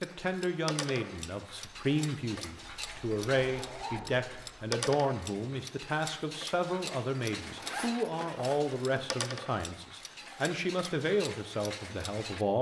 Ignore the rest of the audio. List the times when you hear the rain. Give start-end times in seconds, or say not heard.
not heard.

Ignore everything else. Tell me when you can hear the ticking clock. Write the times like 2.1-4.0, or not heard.
0.0-12.4.